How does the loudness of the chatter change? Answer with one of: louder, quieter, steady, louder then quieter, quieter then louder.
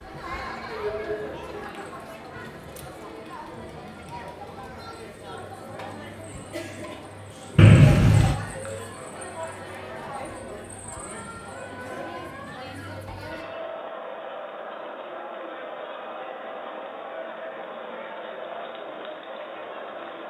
steady.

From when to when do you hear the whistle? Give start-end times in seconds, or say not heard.
7.5-8.3.